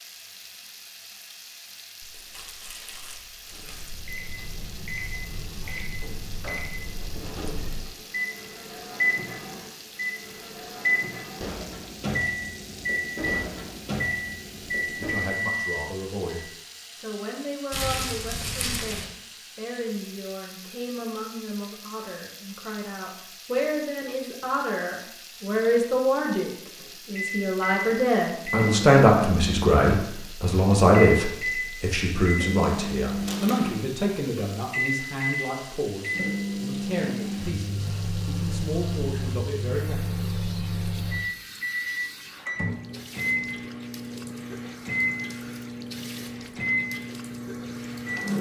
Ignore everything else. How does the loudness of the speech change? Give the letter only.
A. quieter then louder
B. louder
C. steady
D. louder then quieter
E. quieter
D.